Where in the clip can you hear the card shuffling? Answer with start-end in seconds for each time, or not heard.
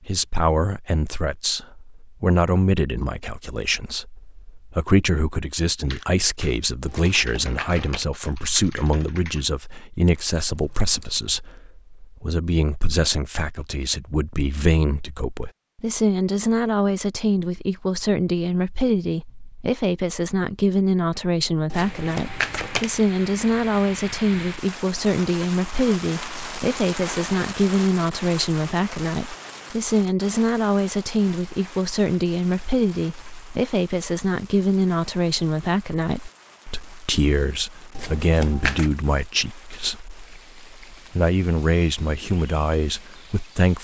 6.8-8.1, 21.7-22.9, 38.0-38.9.